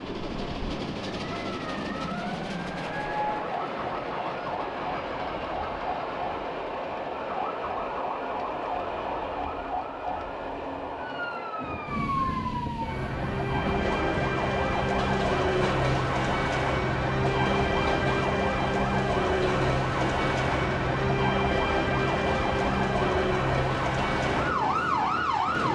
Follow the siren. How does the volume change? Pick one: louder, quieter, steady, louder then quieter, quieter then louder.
louder.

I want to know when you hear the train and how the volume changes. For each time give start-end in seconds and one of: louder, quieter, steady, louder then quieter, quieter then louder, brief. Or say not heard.
0.0-25.7 steady.